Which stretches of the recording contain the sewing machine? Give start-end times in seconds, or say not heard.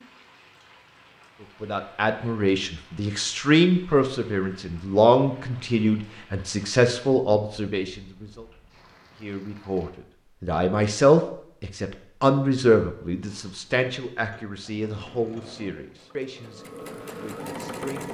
13.2-18.1.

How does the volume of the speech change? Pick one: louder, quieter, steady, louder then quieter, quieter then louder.
quieter.